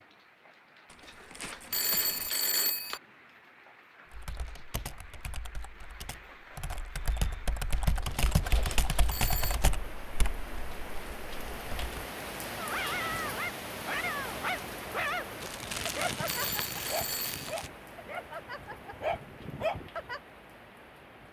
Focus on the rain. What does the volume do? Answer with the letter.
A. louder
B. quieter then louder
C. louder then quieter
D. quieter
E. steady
C.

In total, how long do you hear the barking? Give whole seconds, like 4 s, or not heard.
8 s.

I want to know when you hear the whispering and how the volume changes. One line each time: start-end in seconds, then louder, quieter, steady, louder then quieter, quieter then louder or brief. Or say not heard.
not heard.